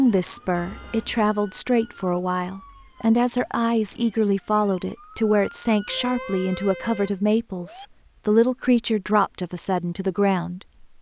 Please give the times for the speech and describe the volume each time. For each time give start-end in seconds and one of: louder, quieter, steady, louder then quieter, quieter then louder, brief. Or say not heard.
0.0-10.6 steady.